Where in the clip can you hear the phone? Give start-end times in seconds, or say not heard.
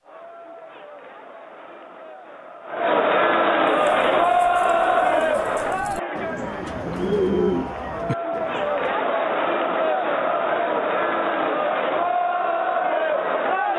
not heard.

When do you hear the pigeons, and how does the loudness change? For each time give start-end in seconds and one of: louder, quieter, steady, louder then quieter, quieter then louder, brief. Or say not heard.
3.6-8.9 louder then quieter.